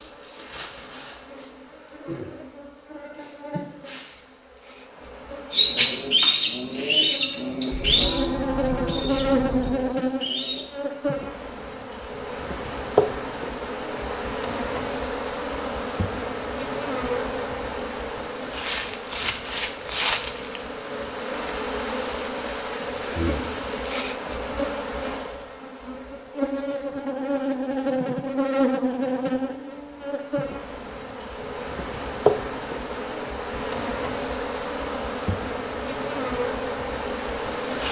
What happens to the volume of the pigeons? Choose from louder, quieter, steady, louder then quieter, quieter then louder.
quieter.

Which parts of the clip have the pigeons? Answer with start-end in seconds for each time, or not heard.
5.5-10.7.